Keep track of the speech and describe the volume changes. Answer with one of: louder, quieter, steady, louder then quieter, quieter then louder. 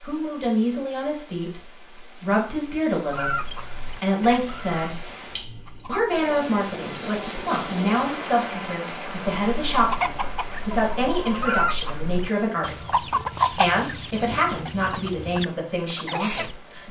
steady.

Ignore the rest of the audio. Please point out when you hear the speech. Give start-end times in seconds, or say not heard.
0.0-5.1, 5.8-16.8.